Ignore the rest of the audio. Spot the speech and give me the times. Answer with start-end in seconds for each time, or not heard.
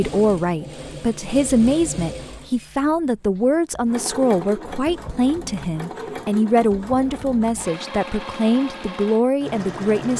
0.0-10.1.